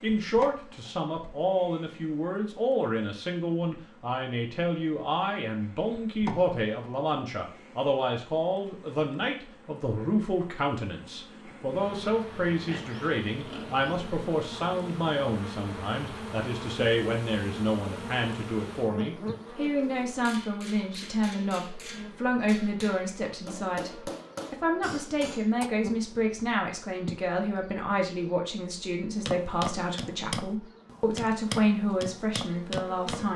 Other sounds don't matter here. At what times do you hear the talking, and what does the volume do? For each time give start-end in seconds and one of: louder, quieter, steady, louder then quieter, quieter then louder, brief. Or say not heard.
0.0-33.3 steady.